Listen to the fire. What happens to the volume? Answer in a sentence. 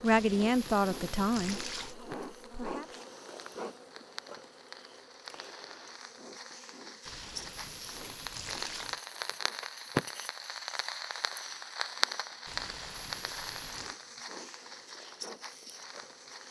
The volume of the fire goes up, then down.